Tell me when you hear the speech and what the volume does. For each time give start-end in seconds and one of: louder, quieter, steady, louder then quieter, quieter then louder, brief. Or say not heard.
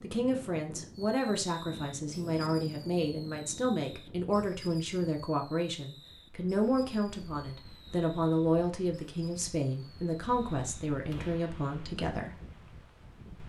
0.0-12.3 steady.